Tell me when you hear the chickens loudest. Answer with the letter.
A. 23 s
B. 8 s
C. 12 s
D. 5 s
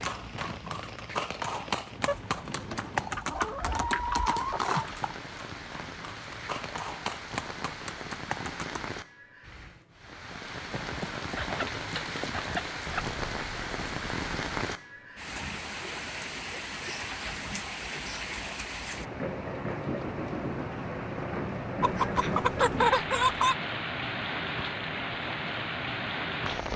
A.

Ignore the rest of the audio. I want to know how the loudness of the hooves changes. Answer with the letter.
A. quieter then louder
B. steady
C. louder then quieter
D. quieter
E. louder
D.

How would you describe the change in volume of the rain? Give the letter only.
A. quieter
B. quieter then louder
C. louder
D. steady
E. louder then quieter
C.